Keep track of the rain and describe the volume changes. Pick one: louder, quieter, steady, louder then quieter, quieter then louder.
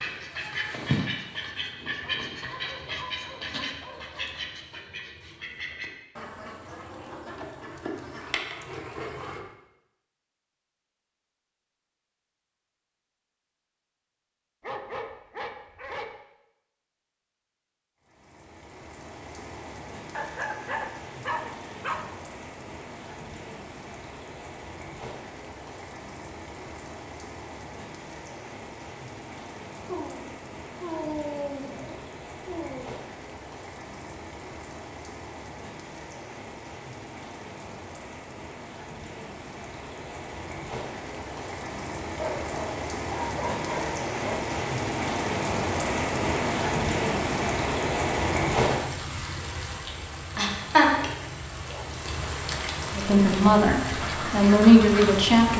louder.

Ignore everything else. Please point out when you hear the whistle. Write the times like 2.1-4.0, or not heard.
not heard.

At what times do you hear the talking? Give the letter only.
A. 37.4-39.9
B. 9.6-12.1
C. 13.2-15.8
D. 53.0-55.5
D.